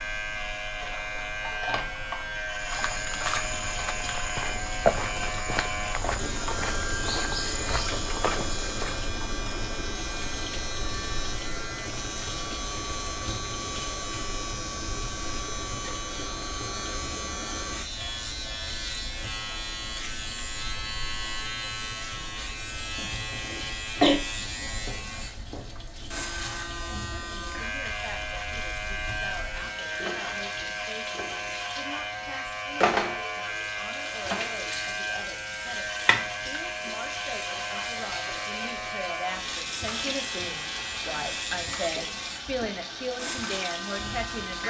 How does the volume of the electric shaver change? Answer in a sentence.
The volume of the electric shaver stays about the same.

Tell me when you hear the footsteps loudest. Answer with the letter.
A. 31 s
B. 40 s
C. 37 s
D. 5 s
D.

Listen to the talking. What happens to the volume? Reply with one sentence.
The volume of the talking goes up.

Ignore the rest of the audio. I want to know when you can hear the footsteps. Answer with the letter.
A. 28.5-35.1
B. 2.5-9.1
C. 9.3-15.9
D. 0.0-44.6
B.